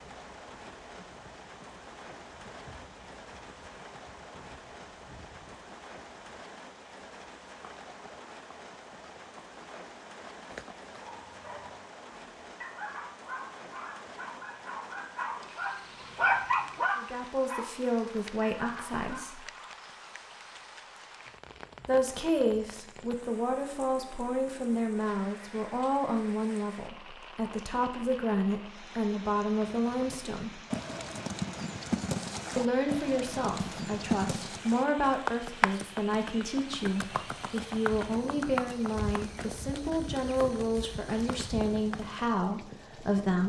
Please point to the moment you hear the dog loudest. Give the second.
16 s.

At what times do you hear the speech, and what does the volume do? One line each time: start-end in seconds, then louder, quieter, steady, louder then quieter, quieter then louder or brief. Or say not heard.
16.9-19.4 brief
21.9-30.6 steady
32.5-43.4 steady.